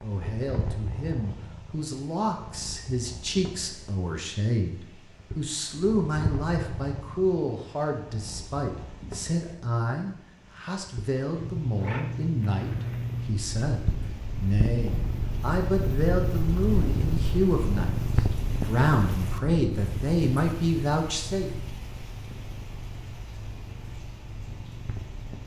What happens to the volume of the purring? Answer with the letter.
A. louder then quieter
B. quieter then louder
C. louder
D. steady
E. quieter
A.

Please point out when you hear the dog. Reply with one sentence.
You can't hear the dog here.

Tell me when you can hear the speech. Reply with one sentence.
You can hear the speech from 0.0 to 21.5 s.